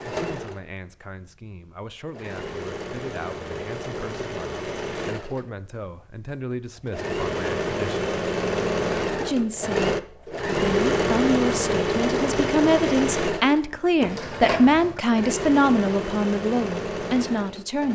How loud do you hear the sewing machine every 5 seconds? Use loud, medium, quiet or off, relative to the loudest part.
medium, loud, loud, medium.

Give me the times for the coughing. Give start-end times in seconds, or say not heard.
14.0-15.0.